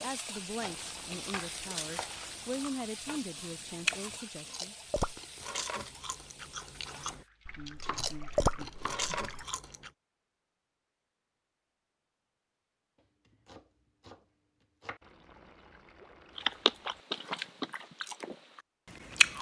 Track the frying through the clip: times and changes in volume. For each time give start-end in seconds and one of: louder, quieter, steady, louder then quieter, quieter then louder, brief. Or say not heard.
0.0-7.3 quieter.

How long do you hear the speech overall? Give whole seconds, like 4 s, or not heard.
5 s.